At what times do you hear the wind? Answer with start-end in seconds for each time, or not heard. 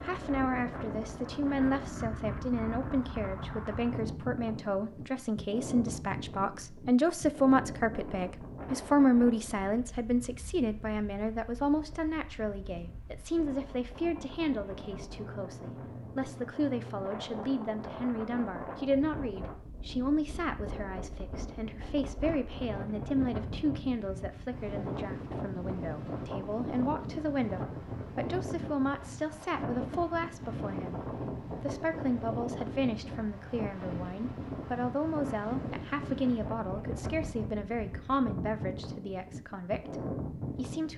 0.0-40.9.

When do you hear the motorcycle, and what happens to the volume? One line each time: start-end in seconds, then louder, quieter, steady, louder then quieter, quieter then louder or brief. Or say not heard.
not heard.